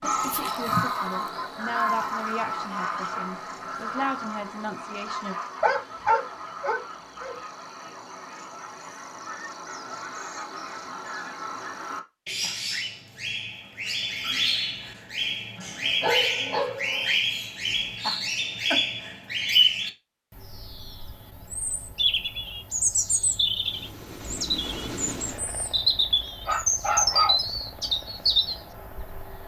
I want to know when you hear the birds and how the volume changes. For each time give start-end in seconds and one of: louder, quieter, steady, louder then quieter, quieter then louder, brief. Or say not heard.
0.0-29.4 quieter then louder.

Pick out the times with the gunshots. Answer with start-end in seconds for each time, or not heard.
not heard.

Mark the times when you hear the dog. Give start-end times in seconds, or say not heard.
5.6-7.3, 15.6-17.1, 26.4-27.4.